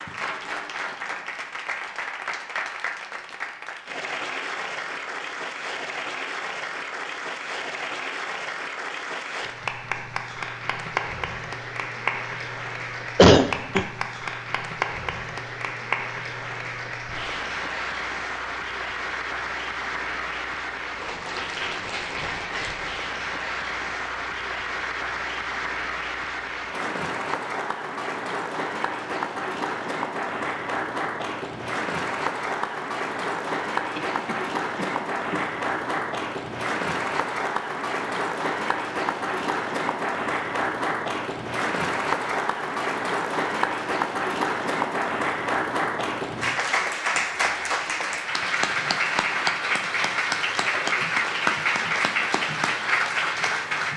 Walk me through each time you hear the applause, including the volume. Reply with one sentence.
You can hear the applause from 0.0 to 53.9 s, getting louder.